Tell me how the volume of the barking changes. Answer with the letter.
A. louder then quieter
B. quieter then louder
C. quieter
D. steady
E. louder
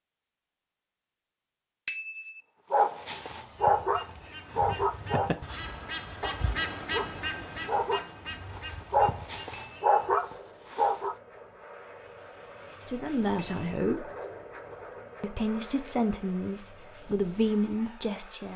B.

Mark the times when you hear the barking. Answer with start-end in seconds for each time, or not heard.
2.7-11.2.